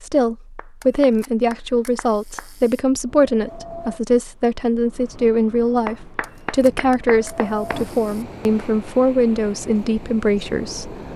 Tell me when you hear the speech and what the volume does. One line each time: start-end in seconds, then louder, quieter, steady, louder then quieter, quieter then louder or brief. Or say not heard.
0.0-11.0 steady.